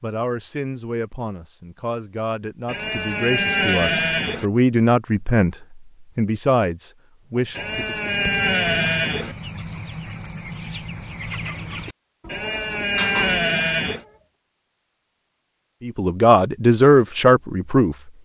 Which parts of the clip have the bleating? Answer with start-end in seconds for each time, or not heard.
2.6-4.5, 7.5-9.3, 12.2-14.1.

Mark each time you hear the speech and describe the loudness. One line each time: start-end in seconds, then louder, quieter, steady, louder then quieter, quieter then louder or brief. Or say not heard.
0.0-5.5 louder
6.2-8.0 brief
15.8-17.9 brief.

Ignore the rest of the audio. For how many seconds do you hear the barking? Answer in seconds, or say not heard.
not heard.